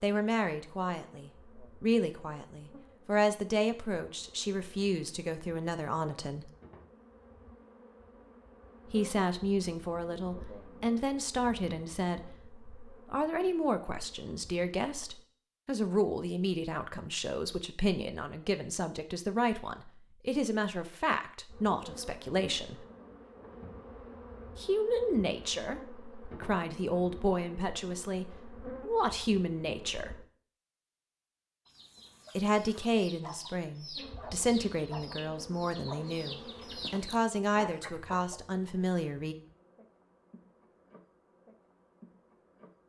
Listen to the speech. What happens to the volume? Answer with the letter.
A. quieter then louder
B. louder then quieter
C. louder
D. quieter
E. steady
E.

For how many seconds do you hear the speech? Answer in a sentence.
You can hear the speech for 33 seconds altogether.